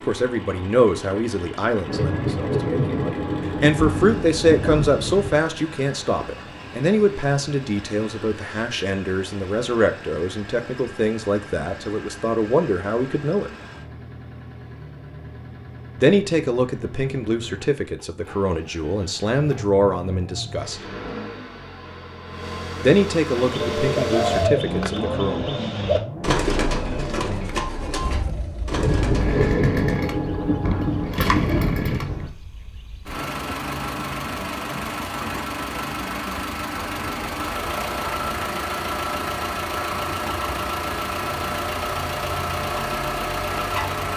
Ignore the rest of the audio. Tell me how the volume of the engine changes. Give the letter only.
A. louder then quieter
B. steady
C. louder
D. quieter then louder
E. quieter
C.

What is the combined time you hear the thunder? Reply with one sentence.
You can hear the thunder for 7 seconds altogether.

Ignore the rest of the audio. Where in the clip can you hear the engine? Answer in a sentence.
The engine can be heard from 0.0 to 44.1 s.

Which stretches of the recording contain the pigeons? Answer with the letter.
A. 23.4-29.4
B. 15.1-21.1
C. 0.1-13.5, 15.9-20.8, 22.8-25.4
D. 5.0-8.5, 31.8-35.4
A.